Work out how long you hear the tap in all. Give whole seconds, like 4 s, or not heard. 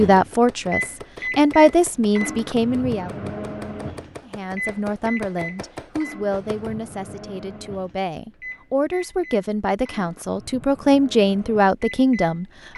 not heard.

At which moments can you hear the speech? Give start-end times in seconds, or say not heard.
0.0-3.1, 4.3-12.7.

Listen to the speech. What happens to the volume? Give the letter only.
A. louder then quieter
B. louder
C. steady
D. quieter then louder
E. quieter
D.